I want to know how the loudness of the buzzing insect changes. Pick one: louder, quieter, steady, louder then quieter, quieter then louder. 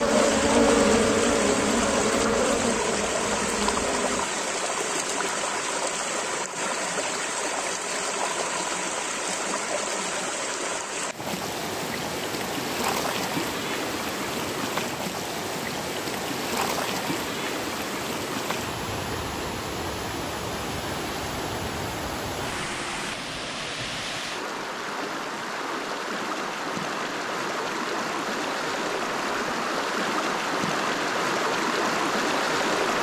quieter.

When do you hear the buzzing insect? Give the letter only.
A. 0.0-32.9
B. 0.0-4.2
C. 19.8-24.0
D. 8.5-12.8
B.